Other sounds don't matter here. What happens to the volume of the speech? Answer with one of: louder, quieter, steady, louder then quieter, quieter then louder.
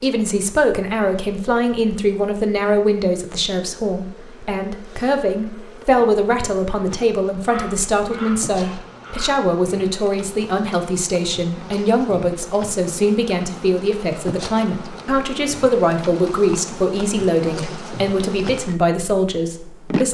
steady.